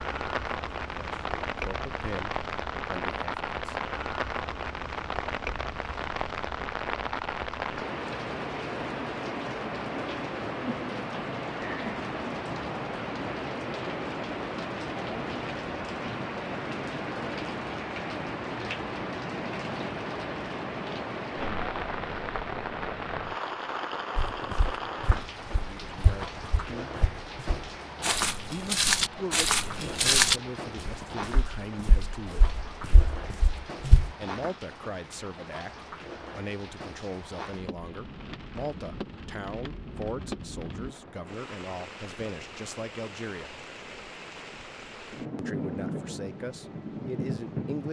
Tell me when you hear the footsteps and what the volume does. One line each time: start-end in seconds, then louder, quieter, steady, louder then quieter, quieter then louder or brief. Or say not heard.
24.1-34.1 louder then quieter.